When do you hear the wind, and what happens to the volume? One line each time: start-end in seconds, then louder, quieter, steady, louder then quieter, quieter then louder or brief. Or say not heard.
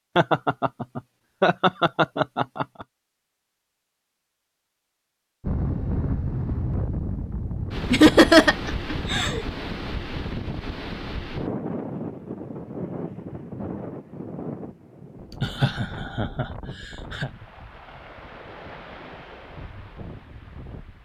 5.4-20.9 quieter.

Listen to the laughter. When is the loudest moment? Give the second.
8 s.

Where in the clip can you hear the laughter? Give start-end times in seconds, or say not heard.
0.1-2.9, 7.9-9.4, 15.3-17.3.